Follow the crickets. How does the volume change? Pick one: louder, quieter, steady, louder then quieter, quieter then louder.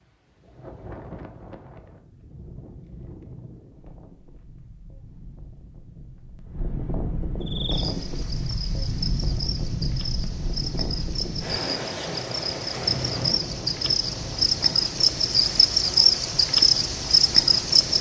louder.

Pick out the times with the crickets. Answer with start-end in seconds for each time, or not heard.
7.4-17.9.